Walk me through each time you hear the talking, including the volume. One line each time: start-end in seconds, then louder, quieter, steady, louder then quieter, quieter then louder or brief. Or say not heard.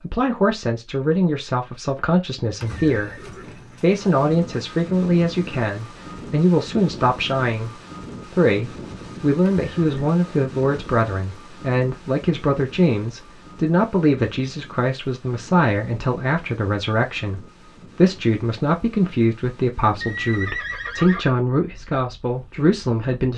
0.0-23.3 steady.